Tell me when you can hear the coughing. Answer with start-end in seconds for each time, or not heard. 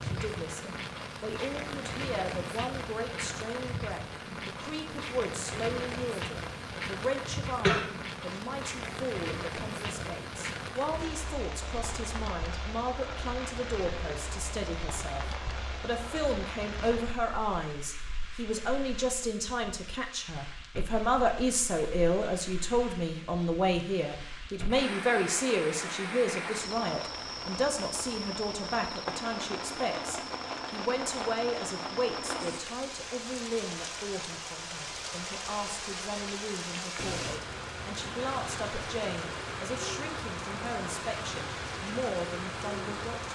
7.5-8.4.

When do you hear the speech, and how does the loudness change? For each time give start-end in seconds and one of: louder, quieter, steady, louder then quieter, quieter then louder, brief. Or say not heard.
0.0-43.3 louder then quieter.